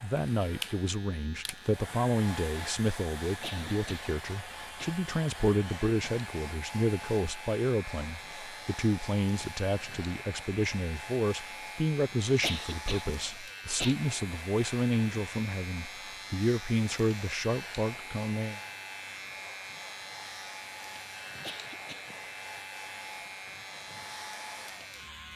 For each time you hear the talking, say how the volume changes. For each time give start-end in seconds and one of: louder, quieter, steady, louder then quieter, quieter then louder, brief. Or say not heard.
0.0-18.6 steady.